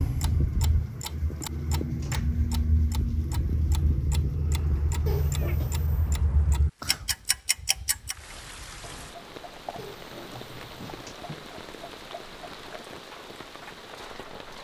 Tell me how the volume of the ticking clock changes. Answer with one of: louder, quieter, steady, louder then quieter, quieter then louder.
quieter.